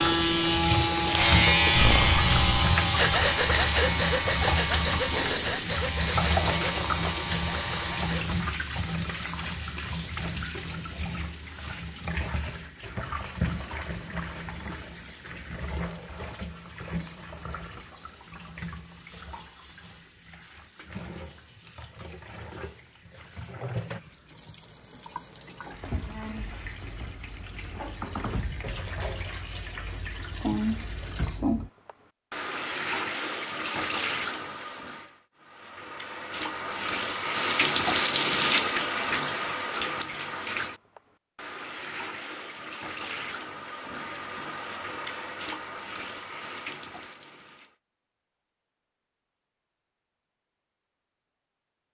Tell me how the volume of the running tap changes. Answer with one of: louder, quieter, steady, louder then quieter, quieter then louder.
quieter then louder.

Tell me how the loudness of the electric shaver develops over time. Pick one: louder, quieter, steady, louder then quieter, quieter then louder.
quieter.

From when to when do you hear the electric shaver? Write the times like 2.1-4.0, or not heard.
0.0-8.2.